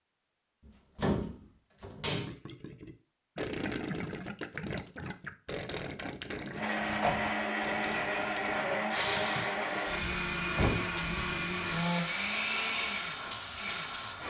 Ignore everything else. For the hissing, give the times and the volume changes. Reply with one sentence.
You can hear the hissing from 8.9 to 14.2 s, at a steady volume.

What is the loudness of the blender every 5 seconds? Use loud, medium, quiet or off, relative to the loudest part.
off, loud, loud.